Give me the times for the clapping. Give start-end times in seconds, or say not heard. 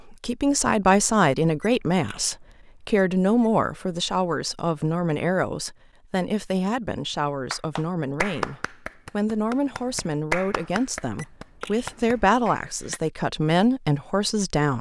7.5-13.0.